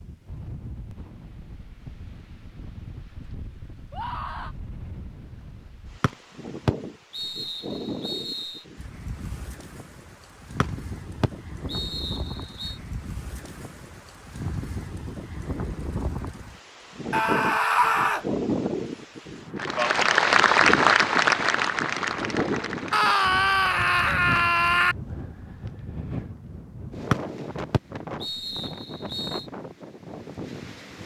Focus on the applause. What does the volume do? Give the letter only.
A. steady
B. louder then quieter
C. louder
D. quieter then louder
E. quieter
E.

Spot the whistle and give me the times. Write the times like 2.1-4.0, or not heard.
6.0-8.6, 10.6-12.8, 27.1-29.4.